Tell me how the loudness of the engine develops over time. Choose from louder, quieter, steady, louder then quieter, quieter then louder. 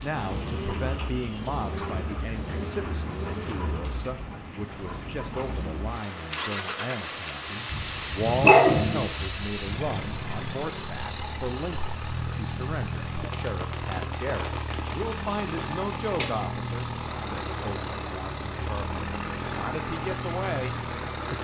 steady.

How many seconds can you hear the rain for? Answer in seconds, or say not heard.
21 s.